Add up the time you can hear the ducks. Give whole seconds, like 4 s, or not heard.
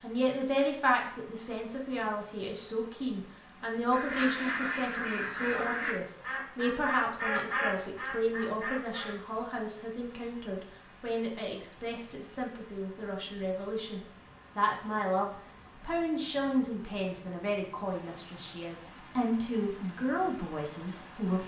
5 s.